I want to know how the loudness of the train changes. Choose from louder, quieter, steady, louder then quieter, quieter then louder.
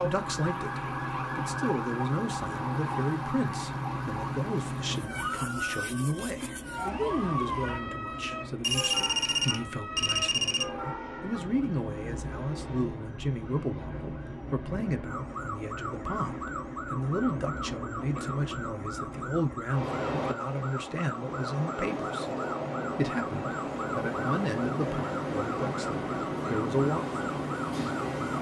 louder.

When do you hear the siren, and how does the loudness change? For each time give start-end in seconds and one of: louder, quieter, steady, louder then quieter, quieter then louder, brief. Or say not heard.
0.0-28.2 quieter.